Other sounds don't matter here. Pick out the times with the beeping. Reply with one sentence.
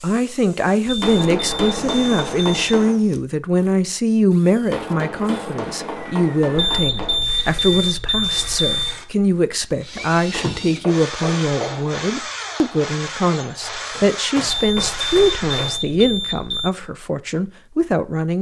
The beeping can be heard from 0.8 to 2.8 s, from 6.5 to 8.9 s and from 14.4 to 16.7 s.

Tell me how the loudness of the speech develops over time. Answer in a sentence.
The volume of the speech stays about the same.